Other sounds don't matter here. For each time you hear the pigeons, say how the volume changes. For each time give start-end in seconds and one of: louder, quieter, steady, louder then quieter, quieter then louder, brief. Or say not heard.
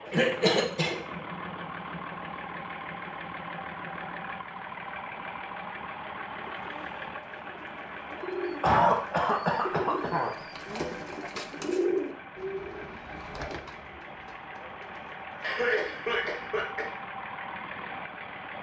6.3-16.7 louder then quieter.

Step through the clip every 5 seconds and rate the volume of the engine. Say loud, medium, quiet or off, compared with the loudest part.
loud, loud, medium, loud.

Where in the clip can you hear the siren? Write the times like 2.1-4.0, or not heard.
not heard.